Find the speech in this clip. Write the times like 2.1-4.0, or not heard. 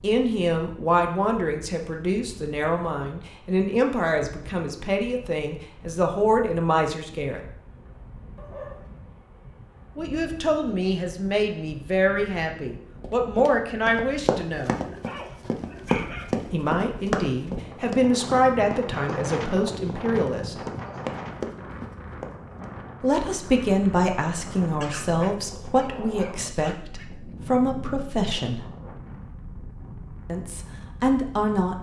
0.0-7.4, 9.9-14.8, 16.5-20.6, 23.0-28.6, 30.2-31.7.